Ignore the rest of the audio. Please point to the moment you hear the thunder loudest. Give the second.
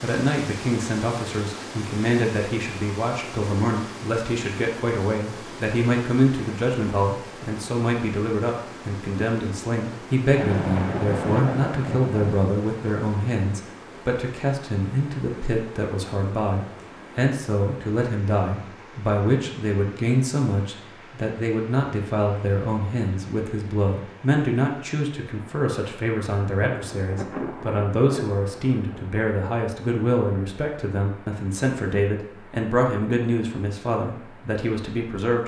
11 s.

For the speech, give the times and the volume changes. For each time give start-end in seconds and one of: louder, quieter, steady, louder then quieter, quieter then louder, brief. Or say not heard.
0.0-35.4 steady.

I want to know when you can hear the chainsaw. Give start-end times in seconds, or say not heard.
not heard.